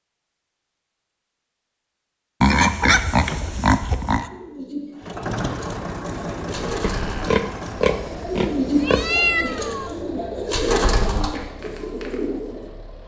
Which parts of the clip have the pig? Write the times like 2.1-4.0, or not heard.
2.4-4.2, 6.8-9.2.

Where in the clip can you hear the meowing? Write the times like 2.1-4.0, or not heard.
8.8-9.9.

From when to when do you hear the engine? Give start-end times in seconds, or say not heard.
5.0-13.0.